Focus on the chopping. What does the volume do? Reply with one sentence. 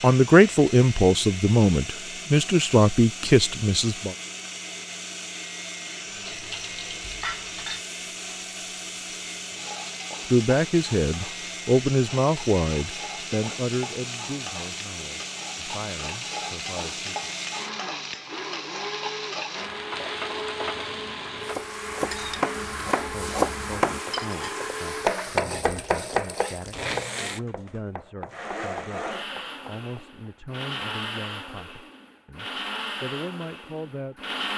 The volume of the chopping goes down.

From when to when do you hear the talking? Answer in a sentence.
You can hear the talking from 0.0 to 4.2 s, from 10.2 to 17.3 s and from 23.0 to 34.3 s.